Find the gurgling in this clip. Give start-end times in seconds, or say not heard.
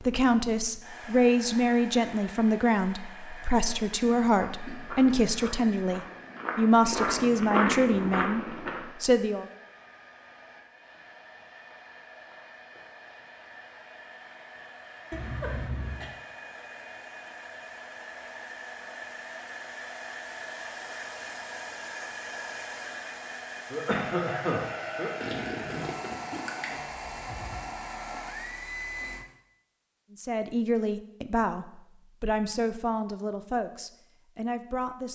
25.2-26.8.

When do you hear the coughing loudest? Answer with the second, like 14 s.
24 s.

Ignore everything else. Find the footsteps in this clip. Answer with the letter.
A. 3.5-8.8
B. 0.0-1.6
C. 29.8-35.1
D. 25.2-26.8
A.